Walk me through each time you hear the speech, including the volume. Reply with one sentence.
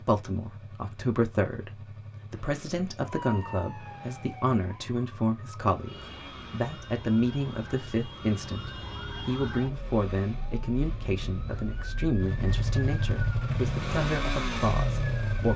The speech can be heard from 0.0 to 15.5 s, at a steady volume.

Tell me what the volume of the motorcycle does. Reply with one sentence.
The loudness of the motorcycle goes up.